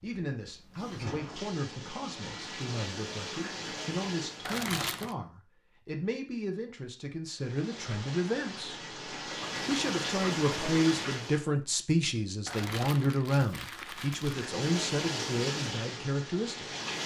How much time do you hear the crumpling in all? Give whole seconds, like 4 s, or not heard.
3 s.